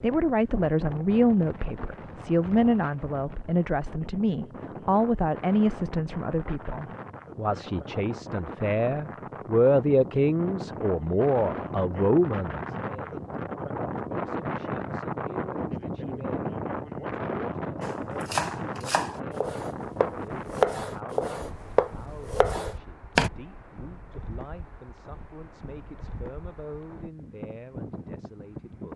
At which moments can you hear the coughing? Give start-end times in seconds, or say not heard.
not heard.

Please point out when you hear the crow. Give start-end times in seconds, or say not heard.
not heard.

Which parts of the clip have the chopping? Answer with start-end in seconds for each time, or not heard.
17.8-23.3.